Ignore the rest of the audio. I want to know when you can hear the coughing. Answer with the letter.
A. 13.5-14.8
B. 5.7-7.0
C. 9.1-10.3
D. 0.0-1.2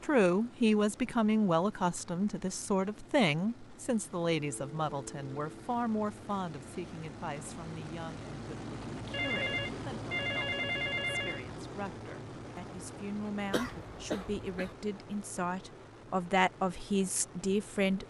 A.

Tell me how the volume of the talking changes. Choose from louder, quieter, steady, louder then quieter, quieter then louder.
quieter then louder.